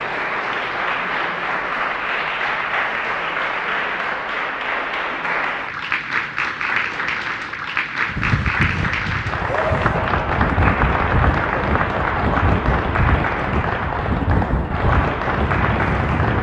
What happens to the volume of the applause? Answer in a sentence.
The volume of the applause stays about the same.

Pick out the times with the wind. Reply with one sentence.
You can hear the wind from 8.1 to 16.3 s.